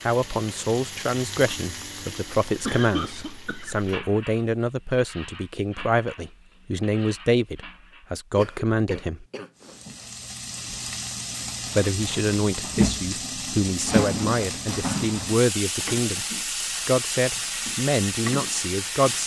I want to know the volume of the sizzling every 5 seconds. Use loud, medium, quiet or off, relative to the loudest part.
medium, quiet, loud, loud.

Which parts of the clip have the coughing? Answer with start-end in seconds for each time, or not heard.
2.6-3.9, 8.3-9.8, 15.8-16.8.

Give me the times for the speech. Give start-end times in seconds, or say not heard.
0.0-9.2, 11.8-16.2, 16.9-19.2.